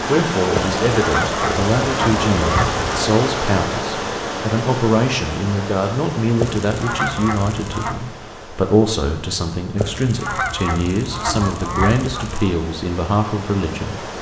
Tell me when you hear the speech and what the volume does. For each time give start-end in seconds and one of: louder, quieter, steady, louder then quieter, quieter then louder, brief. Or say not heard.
0.1-14.1 steady.